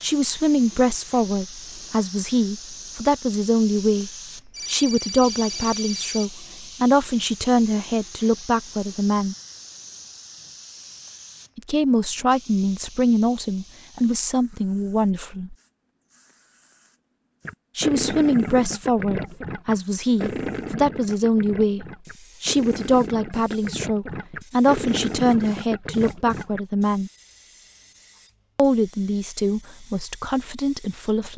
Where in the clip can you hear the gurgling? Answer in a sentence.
You can hear the gurgling from 17.4 to 26.6 s.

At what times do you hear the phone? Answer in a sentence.
You can hear the phone from 4.5 to 6.3 s.